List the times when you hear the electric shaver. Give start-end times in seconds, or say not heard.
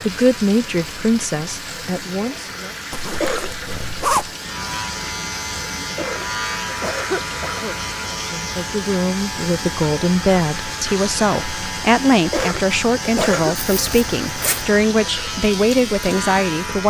0.0-16.8.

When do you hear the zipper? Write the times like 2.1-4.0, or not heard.
2.9-4.3, 13.6-14.7.